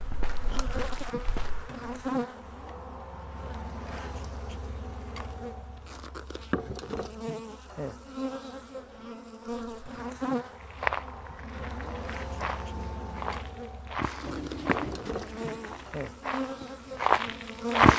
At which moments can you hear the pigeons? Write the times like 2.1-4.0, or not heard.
14.2-15.9.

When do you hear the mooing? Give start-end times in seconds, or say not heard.
2.1-4.2, 11.4-13.4.